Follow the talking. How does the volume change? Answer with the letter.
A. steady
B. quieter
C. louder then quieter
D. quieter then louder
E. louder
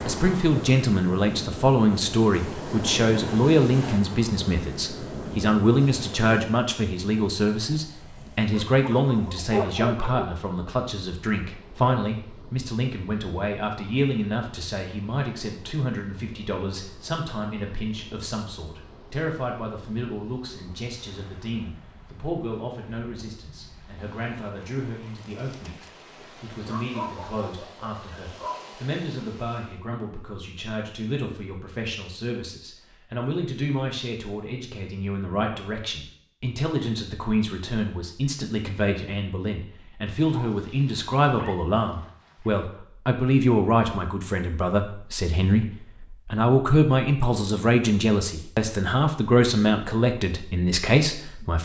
D.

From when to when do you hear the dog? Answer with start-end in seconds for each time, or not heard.
8.5-10.3, 26.6-28.8, 40.1-42.5.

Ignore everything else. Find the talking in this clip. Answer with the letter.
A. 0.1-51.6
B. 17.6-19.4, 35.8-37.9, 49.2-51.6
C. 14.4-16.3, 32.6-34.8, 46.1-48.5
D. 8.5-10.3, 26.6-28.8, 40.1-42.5
A.